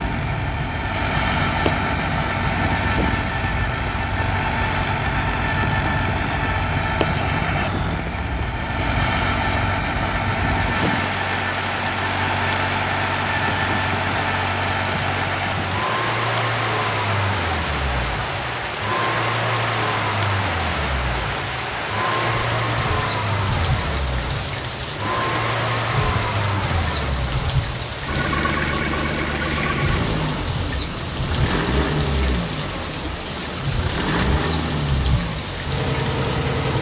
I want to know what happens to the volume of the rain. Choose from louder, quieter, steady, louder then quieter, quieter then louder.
steady.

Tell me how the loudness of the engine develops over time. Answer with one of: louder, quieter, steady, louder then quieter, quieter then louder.
steady.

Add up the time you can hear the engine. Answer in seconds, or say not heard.
37 s.